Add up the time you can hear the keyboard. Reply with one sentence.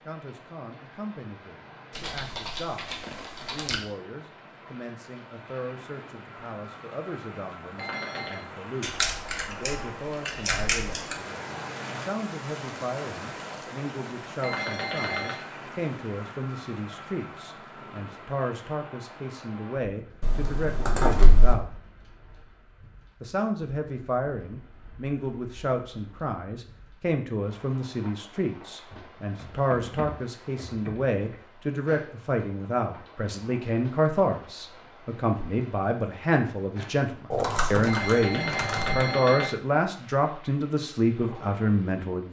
The keyboard can be heard for 10 seconds in total.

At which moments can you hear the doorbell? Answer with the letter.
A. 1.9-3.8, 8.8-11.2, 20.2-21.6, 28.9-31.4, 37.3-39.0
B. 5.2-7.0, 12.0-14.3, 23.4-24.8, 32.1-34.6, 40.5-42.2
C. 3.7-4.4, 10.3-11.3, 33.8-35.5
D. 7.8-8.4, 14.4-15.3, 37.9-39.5
D.